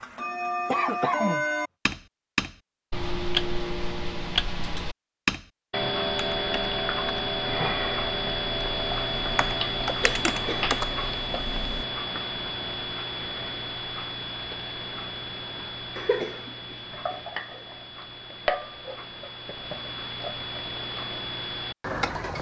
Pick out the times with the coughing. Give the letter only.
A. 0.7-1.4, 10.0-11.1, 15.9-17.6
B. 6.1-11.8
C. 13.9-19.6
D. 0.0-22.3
A.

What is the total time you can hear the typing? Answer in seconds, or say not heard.
6 s.